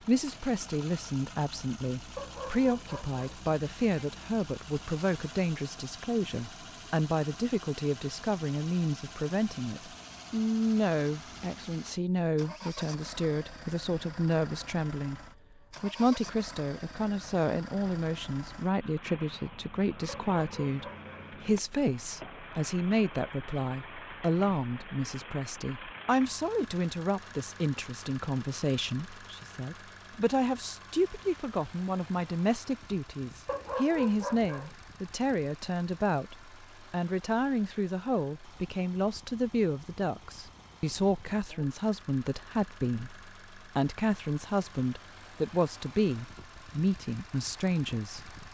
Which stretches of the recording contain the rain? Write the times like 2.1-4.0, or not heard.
not heard.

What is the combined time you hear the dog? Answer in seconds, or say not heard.
4 s.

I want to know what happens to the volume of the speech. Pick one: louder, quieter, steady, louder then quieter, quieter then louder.
steady.